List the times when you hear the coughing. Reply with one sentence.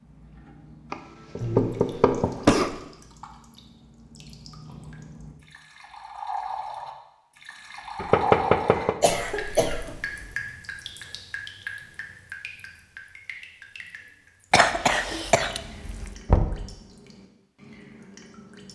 The coughing can be heard from 1.4 to 2.8 s, from 9.0 to 10.3 s and from 14.5 to 16.1 s.